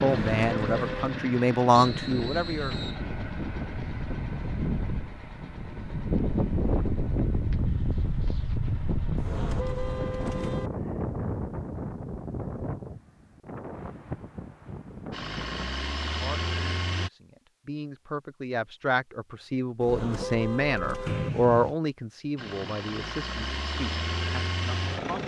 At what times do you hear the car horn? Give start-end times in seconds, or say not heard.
0.1-1.2, 9.2-10.7, 19.8-21.3.